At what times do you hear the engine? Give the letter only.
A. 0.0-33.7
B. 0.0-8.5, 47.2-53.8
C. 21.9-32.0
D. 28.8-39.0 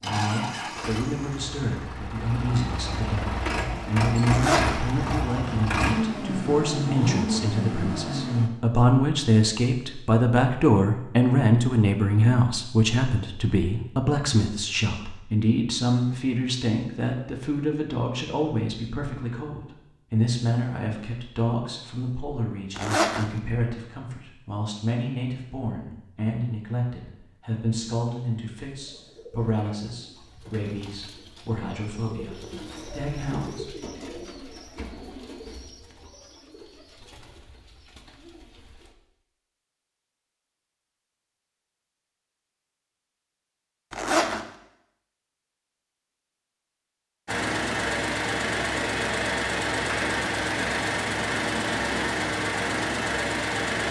B.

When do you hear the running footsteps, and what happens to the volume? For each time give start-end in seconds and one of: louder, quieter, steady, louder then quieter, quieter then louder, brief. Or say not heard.
not heard.